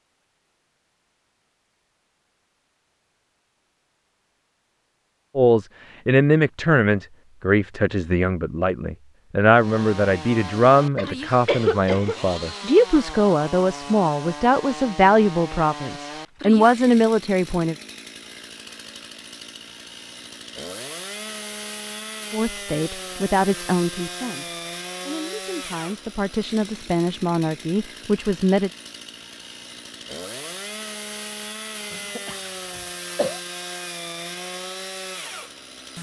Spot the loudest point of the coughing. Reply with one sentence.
The loudest moment of the coughing is at 12 seconds.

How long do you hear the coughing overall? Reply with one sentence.
The coughing can be heard for 3 seconds in total.